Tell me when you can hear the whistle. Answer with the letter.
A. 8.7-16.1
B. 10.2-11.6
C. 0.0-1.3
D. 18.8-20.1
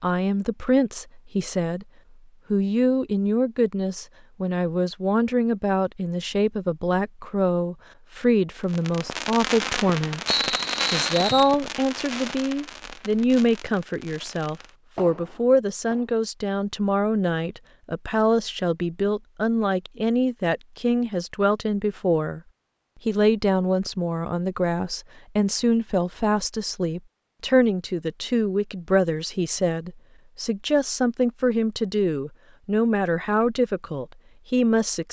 B.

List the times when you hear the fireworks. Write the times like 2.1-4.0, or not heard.
8.7-16.1.